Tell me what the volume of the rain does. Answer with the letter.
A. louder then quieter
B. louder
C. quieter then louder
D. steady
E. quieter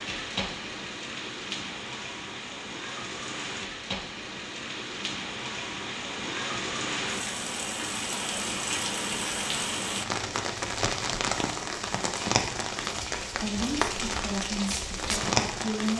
B.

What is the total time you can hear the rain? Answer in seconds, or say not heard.
16 s.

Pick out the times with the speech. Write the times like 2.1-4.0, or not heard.
13.3-15.9.